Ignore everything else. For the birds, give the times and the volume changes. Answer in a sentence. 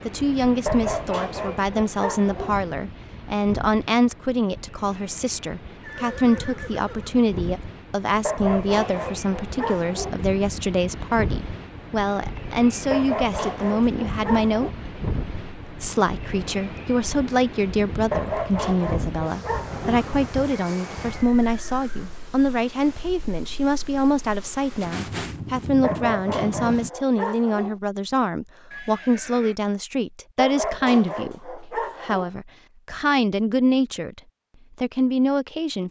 The birds can't be heard in this clip.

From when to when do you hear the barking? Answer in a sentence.
The barking can be heard from 0.7 to 2.6 s, from 8.2 to 10.2 s, from 12.9 to 14.7 s, from 18.1 to 20.1 s, from 25.8 to 27.8 s and from 30.4 to 32.3 s.